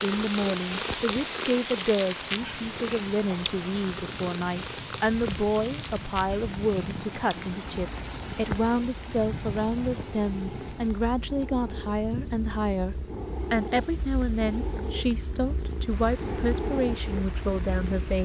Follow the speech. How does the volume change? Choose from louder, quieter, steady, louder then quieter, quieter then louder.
steady.